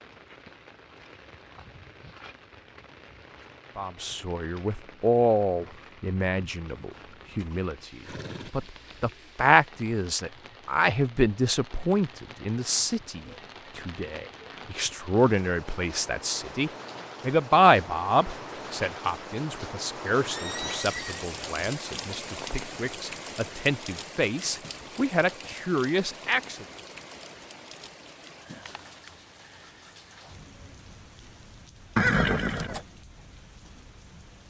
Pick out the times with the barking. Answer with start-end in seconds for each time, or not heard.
not heard.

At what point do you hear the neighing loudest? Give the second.
32 s.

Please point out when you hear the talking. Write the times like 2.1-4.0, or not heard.
3.8-26.6.